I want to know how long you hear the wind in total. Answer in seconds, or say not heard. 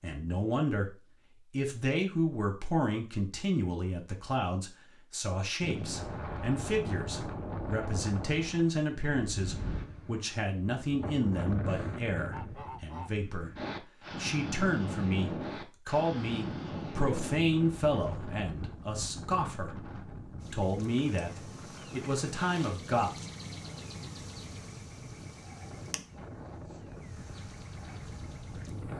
23 s.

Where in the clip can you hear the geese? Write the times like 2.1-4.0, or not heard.
11.7-13.2.